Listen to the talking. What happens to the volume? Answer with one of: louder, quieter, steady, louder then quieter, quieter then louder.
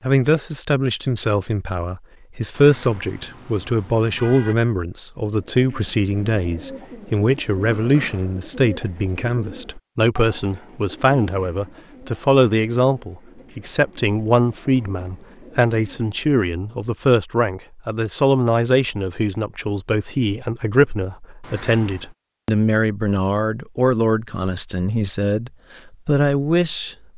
steady.